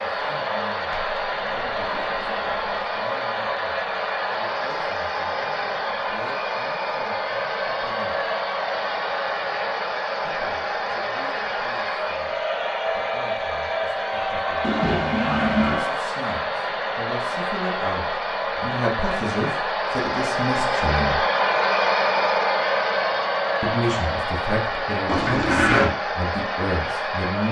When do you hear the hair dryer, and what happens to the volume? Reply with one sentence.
The hair dryer can be heard from 0.0 to 27.4 s, at a steady volume.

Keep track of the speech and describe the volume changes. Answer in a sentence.
The volume of the speech goes up.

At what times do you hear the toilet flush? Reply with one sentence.
The toilet flush can be heard from 0.9 to 3.0 s, from 14.6 to 15.9 s and from 25.1 to 25.9 s.